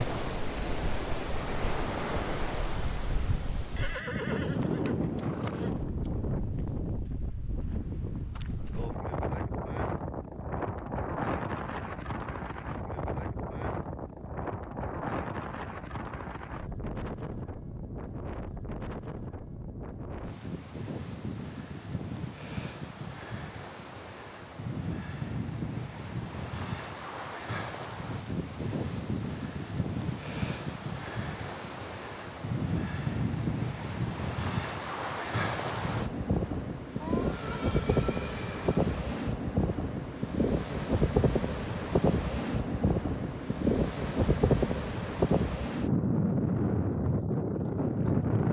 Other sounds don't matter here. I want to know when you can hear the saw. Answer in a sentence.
You can't hear the saw here.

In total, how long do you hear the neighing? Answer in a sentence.
You can hear the neighing for 4 seconds altogether.